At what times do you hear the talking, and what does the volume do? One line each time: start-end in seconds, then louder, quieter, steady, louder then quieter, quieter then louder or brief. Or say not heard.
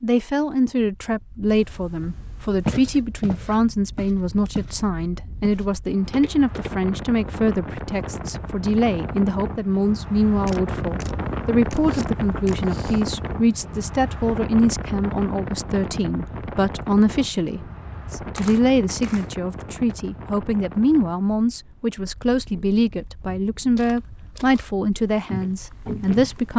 0.0-26.5 steady.